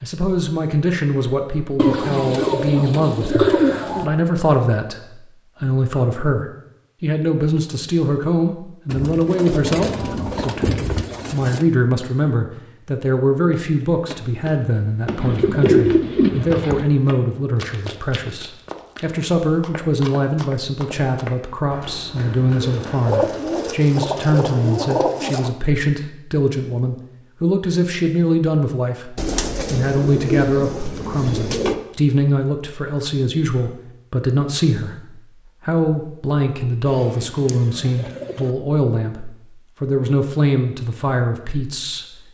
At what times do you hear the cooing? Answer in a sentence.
The cooing can be heard from 1.8 to 4.1 s, from 8.8 to 11.7 s, from 15.1 to 16.9 s, from 22.6 to 25.5 s, from 29.1 to 31.8 s and from 36.9 to 38.5 s.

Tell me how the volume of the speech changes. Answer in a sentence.
The loudness of the speech stays about the same.